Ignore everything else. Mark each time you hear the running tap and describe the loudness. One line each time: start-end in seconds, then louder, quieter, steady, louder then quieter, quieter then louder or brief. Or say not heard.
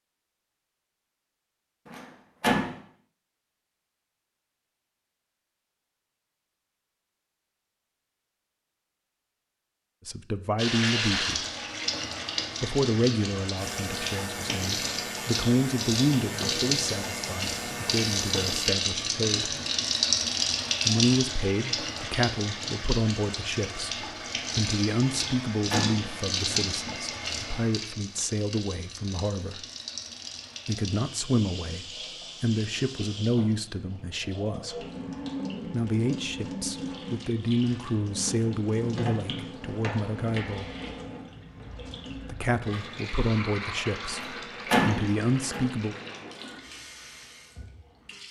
10.6-48.2 quieter.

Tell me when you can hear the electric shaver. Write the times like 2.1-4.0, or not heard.
13.6-18.8.